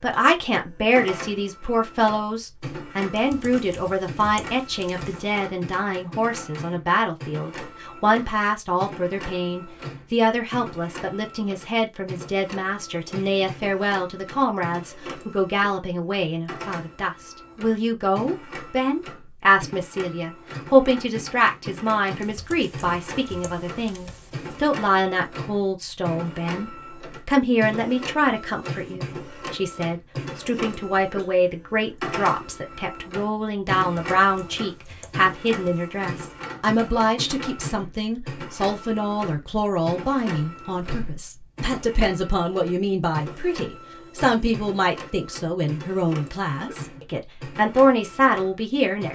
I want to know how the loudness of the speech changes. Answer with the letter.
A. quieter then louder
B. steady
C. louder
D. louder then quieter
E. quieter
B.